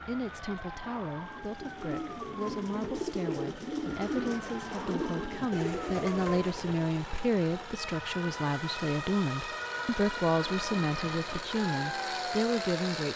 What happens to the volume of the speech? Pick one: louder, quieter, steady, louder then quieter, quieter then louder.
louder.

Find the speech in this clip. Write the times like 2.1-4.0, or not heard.
0.1-13.1.